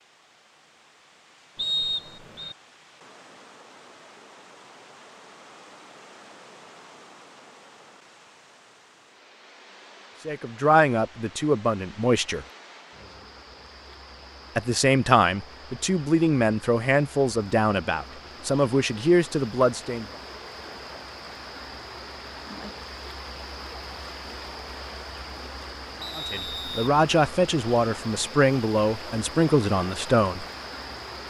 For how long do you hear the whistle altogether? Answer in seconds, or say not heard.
2 s.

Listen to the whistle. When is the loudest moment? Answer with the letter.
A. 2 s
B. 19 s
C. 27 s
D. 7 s
A.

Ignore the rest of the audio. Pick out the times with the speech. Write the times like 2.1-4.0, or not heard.
10.2-12.4, 14.6-20.1, 26.1-30.4.